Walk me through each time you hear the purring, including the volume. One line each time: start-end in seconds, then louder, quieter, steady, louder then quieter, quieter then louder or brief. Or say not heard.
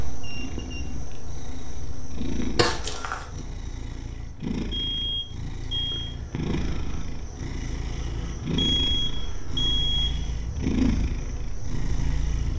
0.0-12.5 louder.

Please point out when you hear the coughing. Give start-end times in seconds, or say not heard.
2.5-3.2.